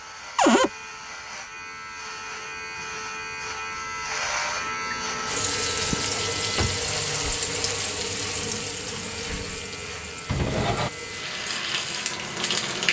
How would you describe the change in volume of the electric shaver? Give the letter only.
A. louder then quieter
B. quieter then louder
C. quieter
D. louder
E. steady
A.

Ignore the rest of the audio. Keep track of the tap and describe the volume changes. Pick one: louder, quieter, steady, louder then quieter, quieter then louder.
quieter then louder.